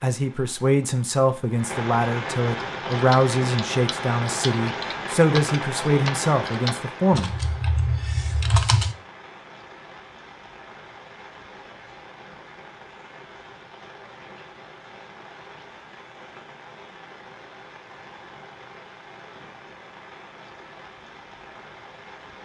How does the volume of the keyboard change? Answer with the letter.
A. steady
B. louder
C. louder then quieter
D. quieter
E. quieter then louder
B.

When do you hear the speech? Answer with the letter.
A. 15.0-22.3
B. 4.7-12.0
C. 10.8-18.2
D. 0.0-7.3
D.